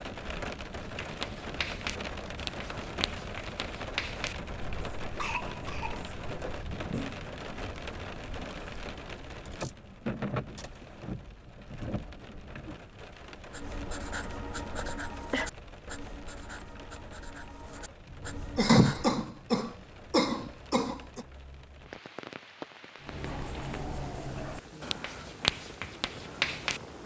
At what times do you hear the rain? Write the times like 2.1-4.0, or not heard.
0.0-27.0.